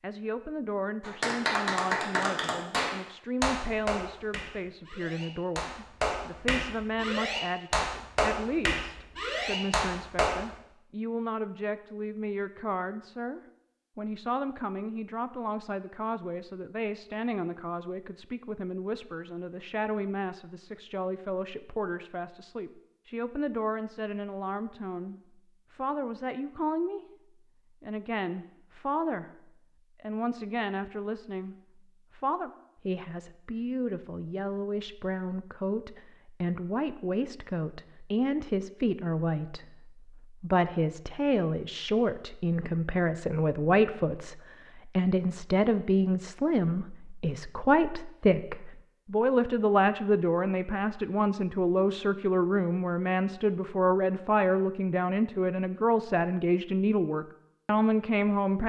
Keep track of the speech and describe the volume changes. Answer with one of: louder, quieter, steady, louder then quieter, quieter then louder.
louder.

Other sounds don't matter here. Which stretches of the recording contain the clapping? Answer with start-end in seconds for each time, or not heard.
1.0-10.6.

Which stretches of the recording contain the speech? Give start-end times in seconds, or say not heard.
0.0-58.6.